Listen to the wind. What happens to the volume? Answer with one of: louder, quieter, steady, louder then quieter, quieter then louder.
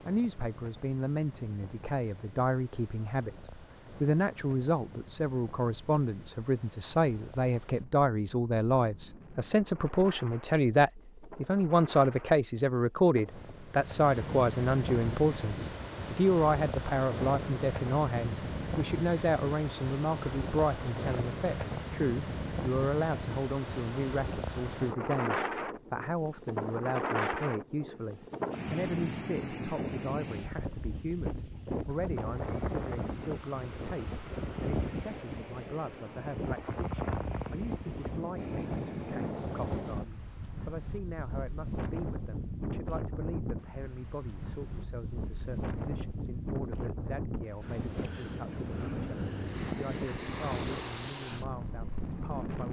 louder.